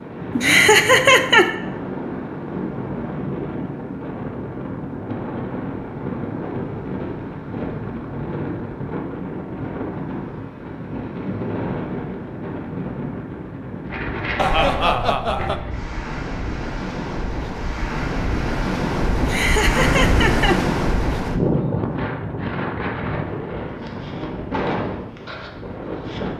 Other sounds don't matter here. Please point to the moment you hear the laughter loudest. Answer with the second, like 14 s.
1 s.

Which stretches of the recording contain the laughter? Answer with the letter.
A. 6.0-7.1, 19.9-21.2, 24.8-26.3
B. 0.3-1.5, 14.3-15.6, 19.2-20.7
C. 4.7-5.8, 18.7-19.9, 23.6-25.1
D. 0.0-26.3
B.